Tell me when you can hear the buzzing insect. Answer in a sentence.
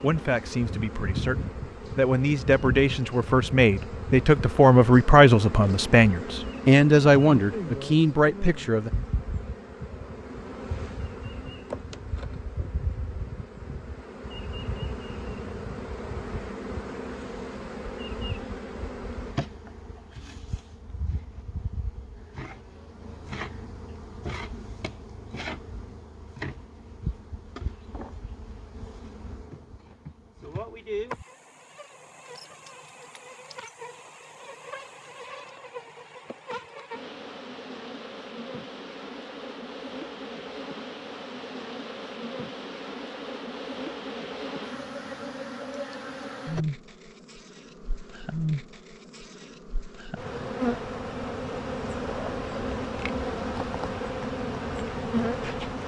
The buzzing insect can be heard from 0.0 to 55.8 s.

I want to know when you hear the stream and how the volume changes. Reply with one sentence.
You can't hear the stream here.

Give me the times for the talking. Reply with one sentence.
The talking can be heard from 0.0 to 8.9 s.